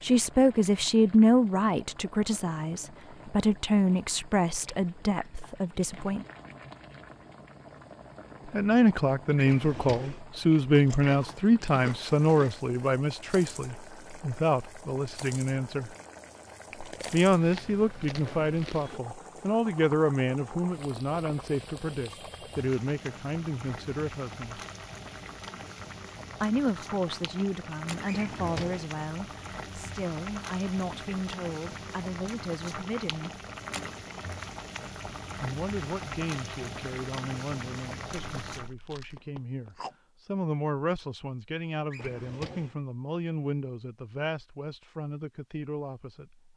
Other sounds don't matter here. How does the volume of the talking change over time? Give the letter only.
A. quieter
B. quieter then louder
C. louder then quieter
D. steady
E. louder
A.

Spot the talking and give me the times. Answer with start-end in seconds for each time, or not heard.
0.0-6.2, 8.4-15.9, 17.1-24.6, 26.4-33.3, 35.4-46.5.